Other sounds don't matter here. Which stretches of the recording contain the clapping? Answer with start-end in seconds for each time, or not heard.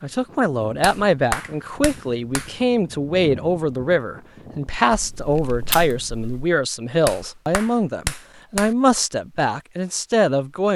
0.8-2.5, 7.0-8.8.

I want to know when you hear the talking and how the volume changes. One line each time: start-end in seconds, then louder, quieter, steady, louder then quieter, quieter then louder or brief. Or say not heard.
0.0-10.7 steady.